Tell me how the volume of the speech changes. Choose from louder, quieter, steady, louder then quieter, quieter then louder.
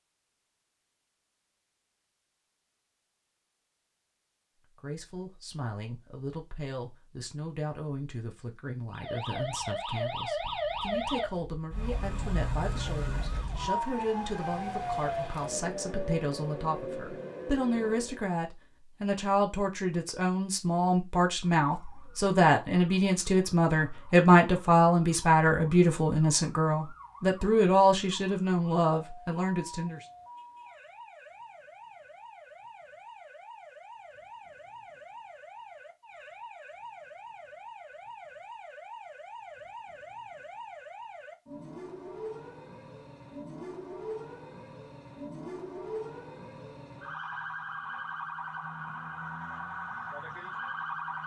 louder.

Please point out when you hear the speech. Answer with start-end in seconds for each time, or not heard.
4.8-30.1.